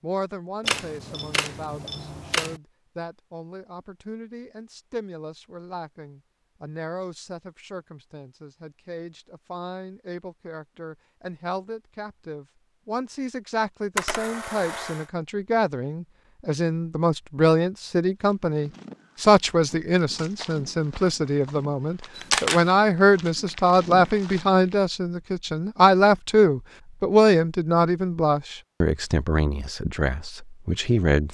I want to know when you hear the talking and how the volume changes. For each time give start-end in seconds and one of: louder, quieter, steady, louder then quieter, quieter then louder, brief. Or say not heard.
0.0-31.2 louder.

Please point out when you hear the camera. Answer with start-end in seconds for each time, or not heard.
0.6-2.6, 13.9-15.1, 22.1-22.6.